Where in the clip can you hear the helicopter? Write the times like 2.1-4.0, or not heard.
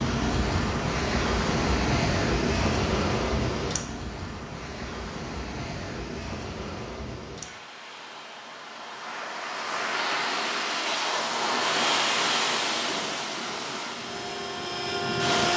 13.9-15.5.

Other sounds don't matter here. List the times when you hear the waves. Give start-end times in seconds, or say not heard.
0.0-15.5.